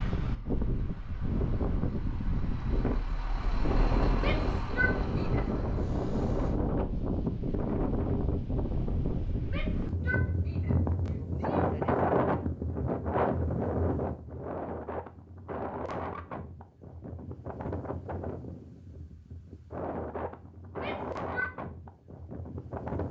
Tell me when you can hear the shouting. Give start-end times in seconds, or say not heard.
4.2-5.5, 9.4-11.7, 20.8-21.5.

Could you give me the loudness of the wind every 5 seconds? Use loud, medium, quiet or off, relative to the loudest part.
loud, loud, loud, medium, medium.